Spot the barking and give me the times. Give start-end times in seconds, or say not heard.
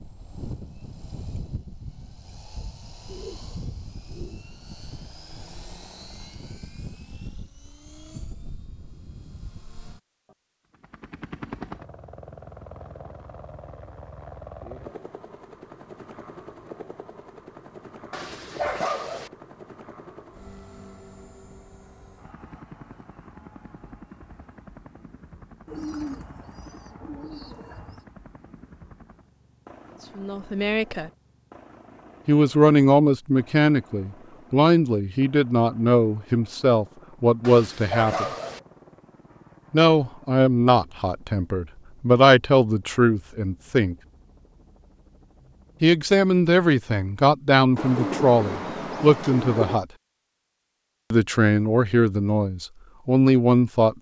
18.1-19.3, 37.4-38.6.